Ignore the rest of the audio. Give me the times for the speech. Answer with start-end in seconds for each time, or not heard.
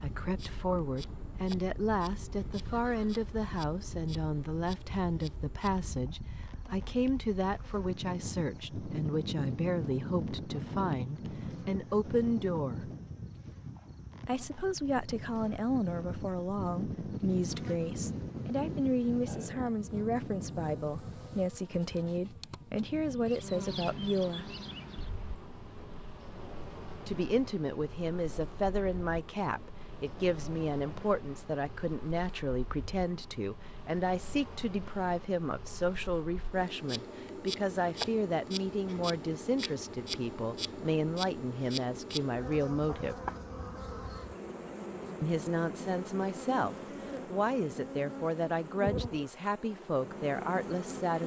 0.0-12.9, 14.2-24.5, 27.1-43.1, 45.2-51.2.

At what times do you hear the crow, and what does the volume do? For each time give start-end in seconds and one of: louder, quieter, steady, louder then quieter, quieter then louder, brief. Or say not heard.
not heard.